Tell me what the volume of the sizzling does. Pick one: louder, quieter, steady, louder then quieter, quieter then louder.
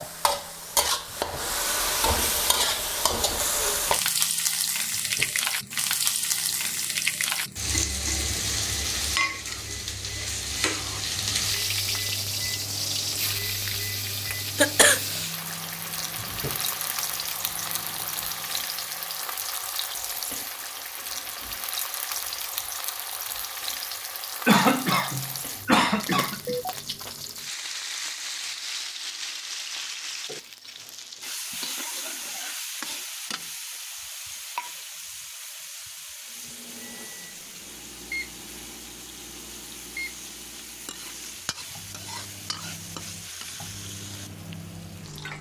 quieter.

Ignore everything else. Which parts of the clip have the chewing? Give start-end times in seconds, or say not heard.
not heard.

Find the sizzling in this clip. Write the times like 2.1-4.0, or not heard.
0.0-45.3.